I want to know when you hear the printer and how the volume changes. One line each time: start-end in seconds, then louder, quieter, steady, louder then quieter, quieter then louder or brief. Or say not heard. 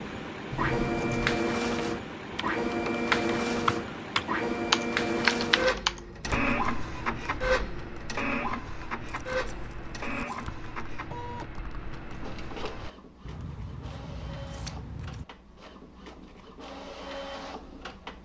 0.0-18.2 quieter.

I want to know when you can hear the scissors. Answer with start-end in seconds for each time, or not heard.
0.5-1.4, 9.1-10.5, 13.2-15.2.